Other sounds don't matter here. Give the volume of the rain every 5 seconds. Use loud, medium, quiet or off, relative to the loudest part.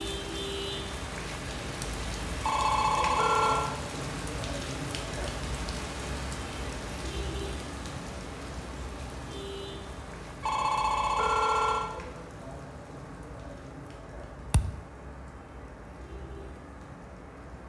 loud, loud, medium, medium.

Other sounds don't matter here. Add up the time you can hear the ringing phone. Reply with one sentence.
You can hear the ringing phone for 3 seconds altogether.